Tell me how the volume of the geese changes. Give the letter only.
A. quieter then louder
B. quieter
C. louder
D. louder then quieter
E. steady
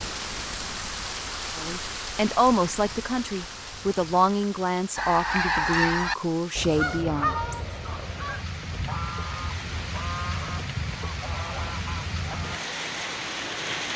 B.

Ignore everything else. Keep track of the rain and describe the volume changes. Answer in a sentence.
The volume of the rain goes down, then up.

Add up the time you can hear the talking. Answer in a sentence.
The talking can be heard for 6 seconds in total.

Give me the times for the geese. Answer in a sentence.
The geese can be heard from 5.0 to 12.6 s.